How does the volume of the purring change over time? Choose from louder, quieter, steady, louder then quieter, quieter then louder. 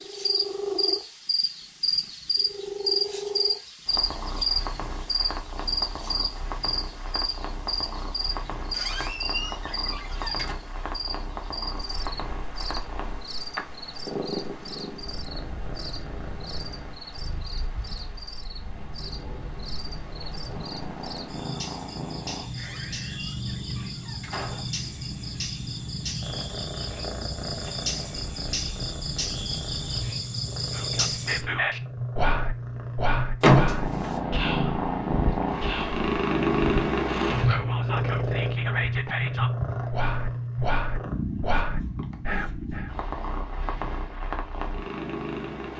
louder.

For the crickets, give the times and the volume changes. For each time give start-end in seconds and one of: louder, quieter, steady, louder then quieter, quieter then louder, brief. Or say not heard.
0.0-31.4 quieter then louder.